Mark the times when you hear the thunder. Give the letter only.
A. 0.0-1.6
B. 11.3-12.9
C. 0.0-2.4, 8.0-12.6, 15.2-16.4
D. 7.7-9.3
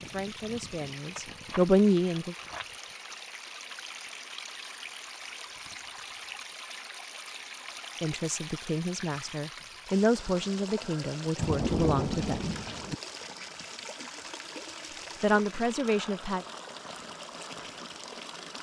B.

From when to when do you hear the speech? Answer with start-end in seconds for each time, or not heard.
0.0-2.4, 8.0-12.6, 15.2-16.4.